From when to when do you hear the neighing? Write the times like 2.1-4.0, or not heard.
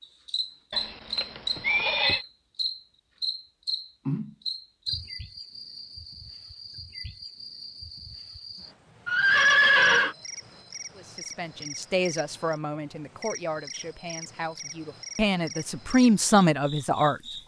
0.7-2.2, 9.1-10.2.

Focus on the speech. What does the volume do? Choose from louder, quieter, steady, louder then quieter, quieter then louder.
quieter then louder.